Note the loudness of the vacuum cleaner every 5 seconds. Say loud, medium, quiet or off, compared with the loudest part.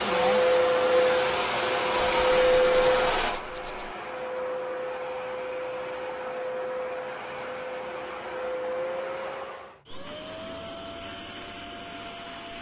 loud, medium, quiet.